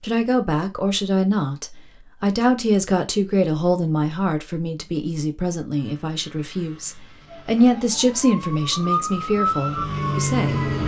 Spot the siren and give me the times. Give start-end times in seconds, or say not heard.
7.2-10.8.